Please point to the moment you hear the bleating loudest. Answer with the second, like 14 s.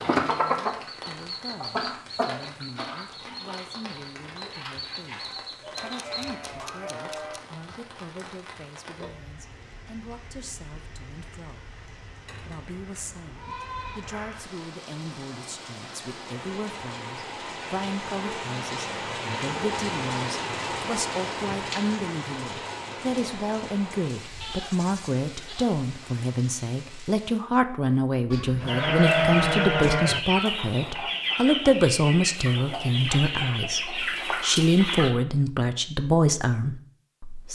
29 s.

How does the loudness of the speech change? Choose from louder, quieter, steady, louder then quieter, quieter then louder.
louder.